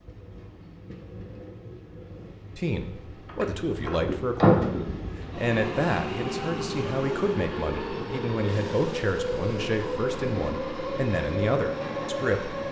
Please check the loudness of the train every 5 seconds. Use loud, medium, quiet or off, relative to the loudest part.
medium, loud, loud.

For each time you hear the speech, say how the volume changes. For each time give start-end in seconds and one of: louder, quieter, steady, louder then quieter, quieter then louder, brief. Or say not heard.
2.5-4.6 brief
5.3-12.6 steady.